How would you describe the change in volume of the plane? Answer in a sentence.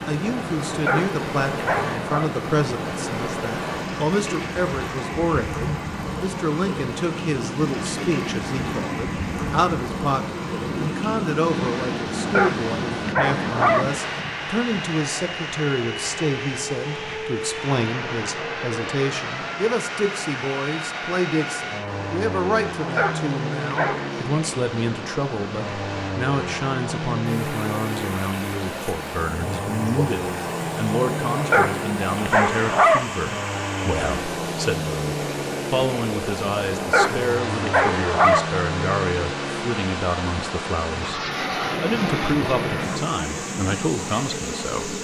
The loudness of the plane stays about the same.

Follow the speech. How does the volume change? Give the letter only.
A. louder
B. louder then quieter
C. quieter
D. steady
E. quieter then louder
D.